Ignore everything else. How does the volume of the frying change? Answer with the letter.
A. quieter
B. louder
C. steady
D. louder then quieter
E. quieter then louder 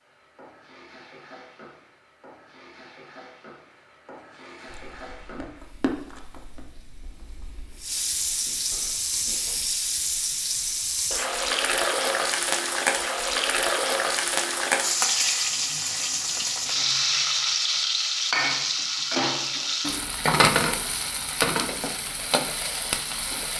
B.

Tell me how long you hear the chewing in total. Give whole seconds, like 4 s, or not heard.
5 s.